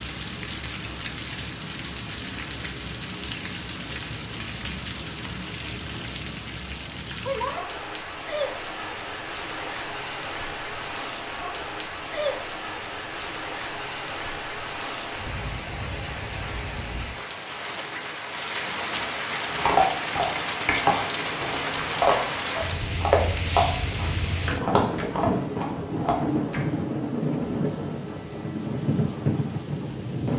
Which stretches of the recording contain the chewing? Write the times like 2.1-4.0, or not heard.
19.6-26.6.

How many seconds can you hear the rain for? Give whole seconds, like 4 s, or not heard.
30 s.